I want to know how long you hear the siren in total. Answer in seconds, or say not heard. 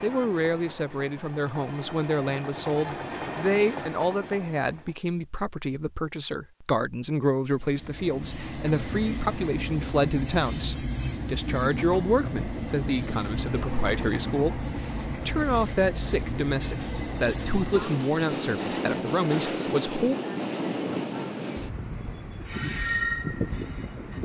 not heard.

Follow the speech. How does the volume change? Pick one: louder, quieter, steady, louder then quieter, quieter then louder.
steady.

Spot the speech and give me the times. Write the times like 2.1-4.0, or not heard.
0.0-20.1.